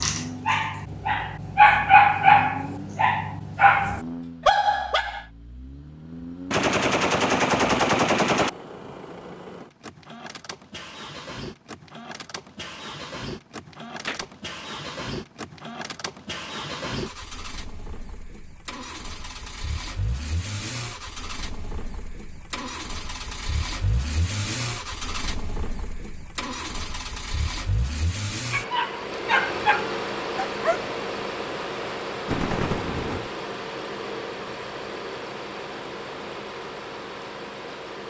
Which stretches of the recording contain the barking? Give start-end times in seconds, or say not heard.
0.0-5.2, 28.5-30.8.